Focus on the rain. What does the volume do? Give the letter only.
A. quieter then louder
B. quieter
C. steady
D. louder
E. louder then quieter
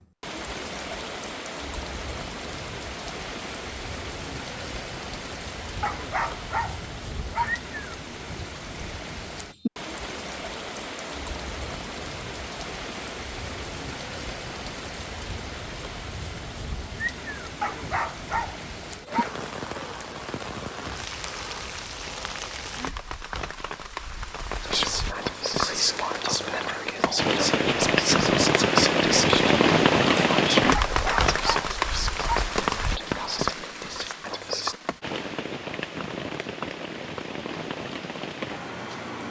E.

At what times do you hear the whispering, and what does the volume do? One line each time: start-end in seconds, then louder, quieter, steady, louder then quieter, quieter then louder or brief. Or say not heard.
24.6-34.8 quieter.